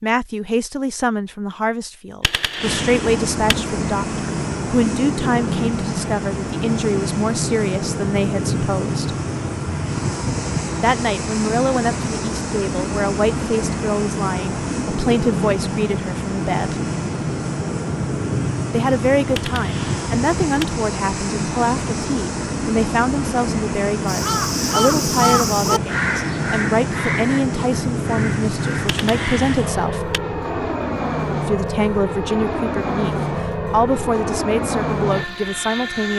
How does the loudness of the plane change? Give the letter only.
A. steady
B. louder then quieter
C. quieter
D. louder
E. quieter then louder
A.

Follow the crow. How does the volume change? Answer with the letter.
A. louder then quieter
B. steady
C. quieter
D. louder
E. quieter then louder
C.